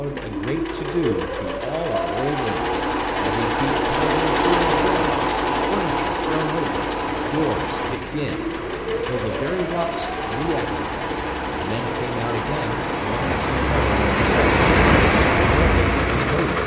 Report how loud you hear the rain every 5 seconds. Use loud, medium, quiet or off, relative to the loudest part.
off, quiet, loud, loud.